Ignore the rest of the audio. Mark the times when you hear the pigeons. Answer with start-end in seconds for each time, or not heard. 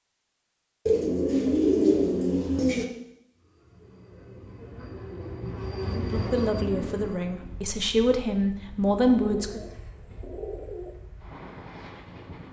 0.8-2.9, 9.1-10.9.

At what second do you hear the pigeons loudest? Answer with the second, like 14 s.
2 s.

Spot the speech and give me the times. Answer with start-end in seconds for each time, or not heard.
6.0-9.6.